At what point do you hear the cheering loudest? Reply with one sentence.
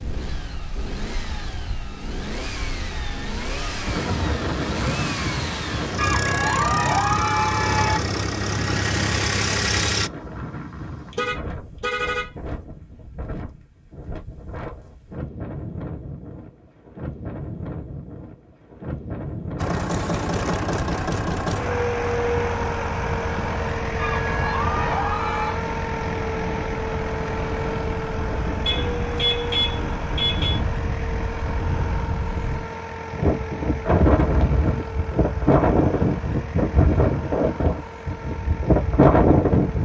The loudest moment of the cheering is at 7 seconds.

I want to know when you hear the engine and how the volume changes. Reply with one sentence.
You can hear the engine from 0.0 to 10.1 s, getting louder; and from 19.6 to 39.8 s, getting quieter.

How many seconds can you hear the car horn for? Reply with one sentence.
The car horn can be heard for 3 seconds in total.